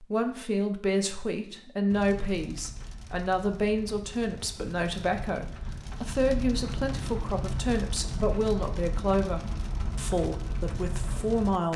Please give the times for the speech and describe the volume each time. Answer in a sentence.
The speech can be heard from 0.0 to 11.7 s, at a steady volume.